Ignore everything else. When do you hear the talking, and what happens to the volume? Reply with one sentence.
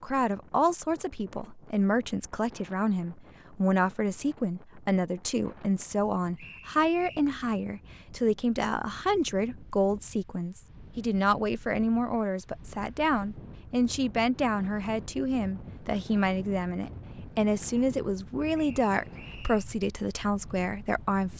You can hear the talking from 0.0 to 21.3 s, at a steady volume.